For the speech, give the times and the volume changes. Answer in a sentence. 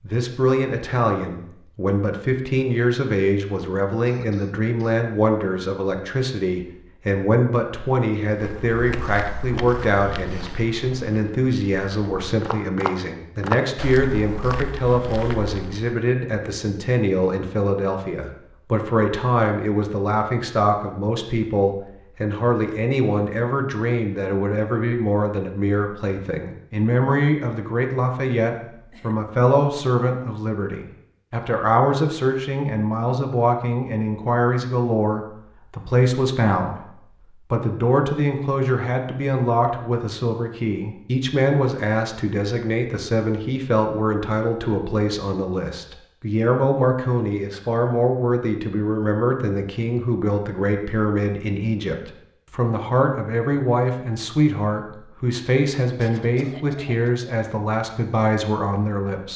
You can hear the speech from 0.0 to 59.3 s, at a steady volume.